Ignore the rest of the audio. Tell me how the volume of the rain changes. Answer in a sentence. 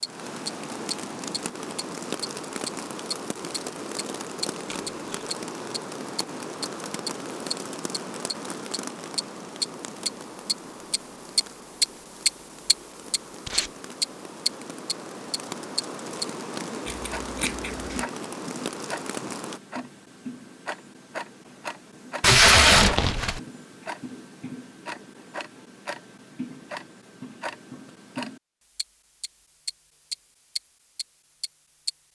The loudness of the rain goes down, then up.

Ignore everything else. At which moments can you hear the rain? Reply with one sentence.
The rain can be heard from 0.0 to 19.6 s.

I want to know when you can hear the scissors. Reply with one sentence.
The scissors can be heard from 16.9 to 18.1 s.